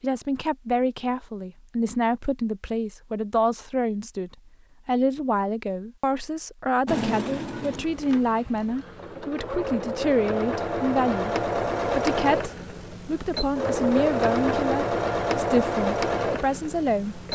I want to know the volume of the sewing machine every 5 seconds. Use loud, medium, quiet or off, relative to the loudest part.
off, medium, loud, loud.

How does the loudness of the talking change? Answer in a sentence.
The volume of the talking stays about the same.